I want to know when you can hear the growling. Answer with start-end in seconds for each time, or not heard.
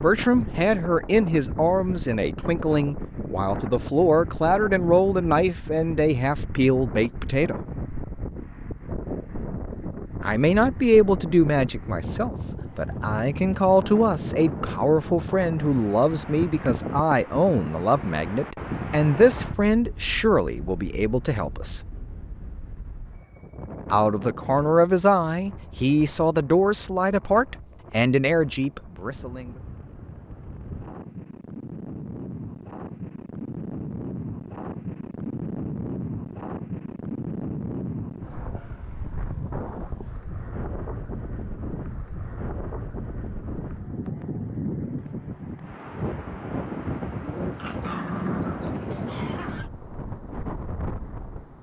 47.2-48.9.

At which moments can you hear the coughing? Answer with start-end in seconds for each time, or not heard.
48.9-49.7.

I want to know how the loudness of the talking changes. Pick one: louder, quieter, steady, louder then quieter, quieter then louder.
steady.